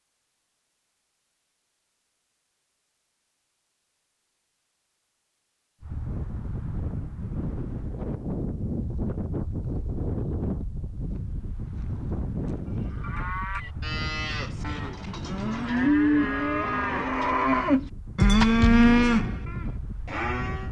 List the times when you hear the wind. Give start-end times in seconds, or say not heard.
5.8-20.6.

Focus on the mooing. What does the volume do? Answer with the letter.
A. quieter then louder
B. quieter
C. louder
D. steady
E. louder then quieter
C.